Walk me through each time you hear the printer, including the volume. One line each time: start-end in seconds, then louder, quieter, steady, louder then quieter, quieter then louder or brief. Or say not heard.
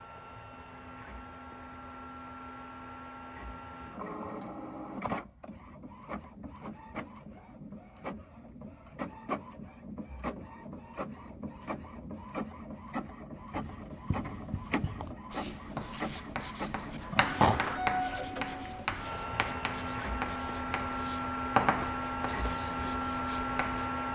0.0-24.1 louder.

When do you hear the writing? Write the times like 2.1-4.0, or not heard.
13.5-23.9.